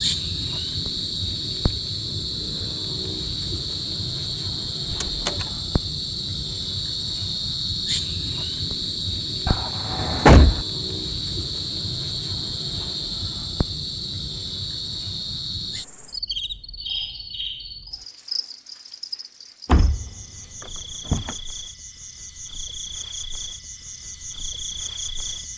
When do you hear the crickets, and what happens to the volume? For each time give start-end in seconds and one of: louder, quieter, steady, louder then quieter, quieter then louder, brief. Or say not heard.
0.0-25.5 quieter.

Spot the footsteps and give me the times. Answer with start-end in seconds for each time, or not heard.
not heard.